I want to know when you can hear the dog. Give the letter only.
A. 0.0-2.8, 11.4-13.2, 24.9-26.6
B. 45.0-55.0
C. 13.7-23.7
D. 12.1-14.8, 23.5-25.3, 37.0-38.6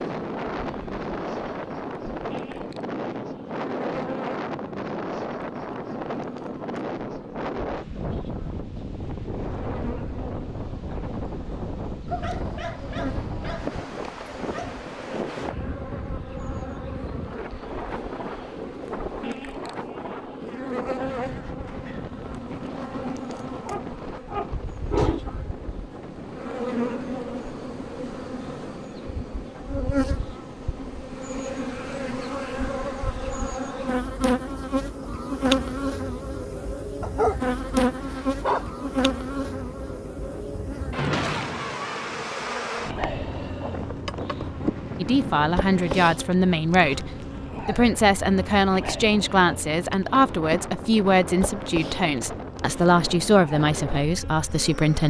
D.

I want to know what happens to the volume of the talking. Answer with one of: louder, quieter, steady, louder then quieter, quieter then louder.
steady.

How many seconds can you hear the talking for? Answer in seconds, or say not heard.
10 s.